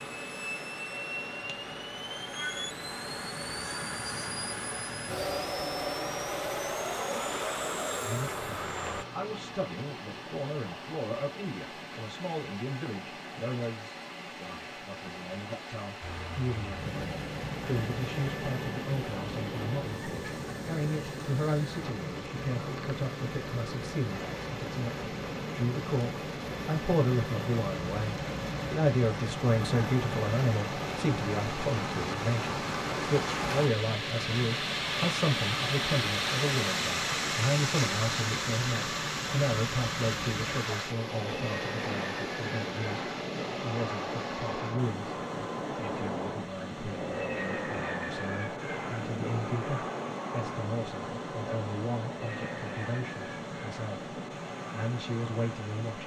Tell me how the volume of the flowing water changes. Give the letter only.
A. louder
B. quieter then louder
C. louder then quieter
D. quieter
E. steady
C.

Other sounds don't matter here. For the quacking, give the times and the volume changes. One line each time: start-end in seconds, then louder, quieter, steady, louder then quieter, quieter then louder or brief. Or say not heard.
not heard.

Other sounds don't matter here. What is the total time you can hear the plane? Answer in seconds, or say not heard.
49 s.